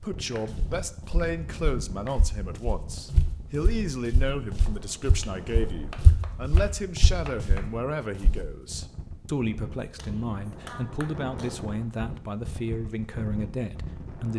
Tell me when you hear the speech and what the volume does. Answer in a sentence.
You can hear the speech from 0.0 to 14.3 s, at a steady volume.